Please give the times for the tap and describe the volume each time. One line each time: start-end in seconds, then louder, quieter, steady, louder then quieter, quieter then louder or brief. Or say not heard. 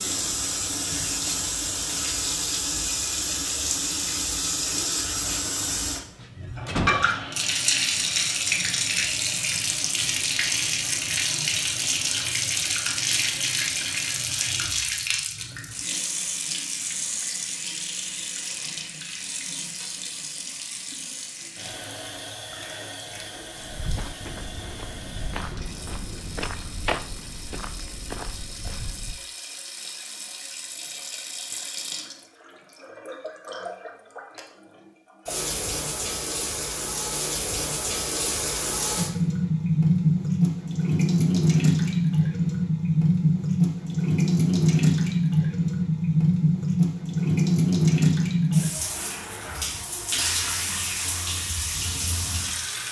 0.0-52.8 quieter then louder.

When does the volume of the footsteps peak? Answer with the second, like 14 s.
27 s.